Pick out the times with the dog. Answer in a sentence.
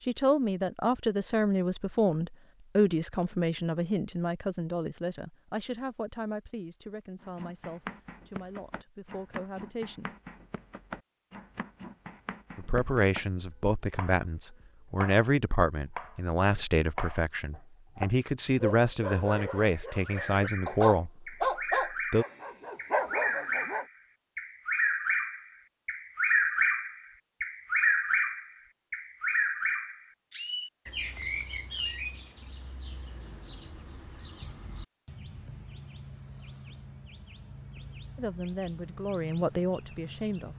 The dog can be heard from 18.6 to 23.9 s.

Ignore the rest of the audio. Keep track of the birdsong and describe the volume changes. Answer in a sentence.
The volume of the birdsong goes up, then down.